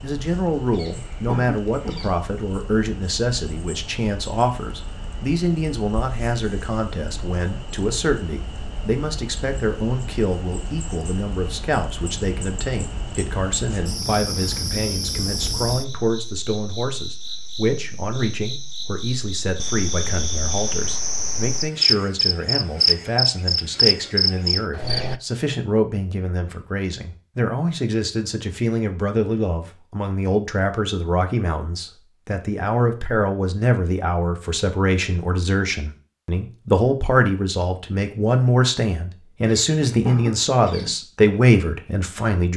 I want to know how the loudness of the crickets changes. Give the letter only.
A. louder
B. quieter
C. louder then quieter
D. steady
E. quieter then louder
A.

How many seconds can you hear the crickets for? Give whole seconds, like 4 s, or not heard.
25 s.